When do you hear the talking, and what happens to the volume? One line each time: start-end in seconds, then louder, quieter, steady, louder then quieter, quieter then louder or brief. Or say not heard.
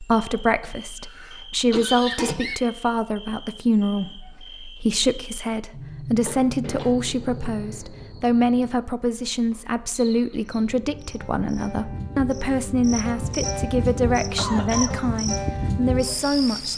0.0-16.7 steady.